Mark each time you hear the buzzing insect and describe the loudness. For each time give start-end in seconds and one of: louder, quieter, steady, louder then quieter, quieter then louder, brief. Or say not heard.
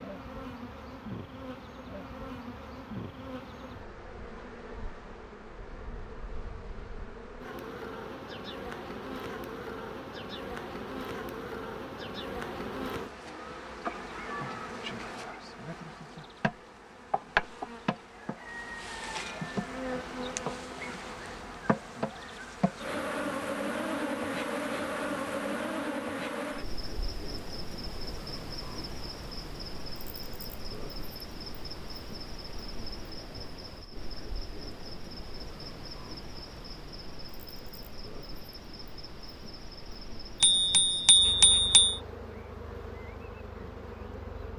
0.0-44.5 louder then quieter.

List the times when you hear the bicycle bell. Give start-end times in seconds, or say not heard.
40.4-42.0.